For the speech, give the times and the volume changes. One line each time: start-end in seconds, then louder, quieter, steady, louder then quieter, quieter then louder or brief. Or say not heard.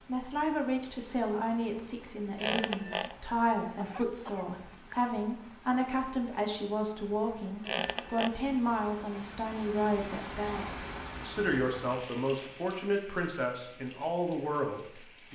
0.1-15.3 steady.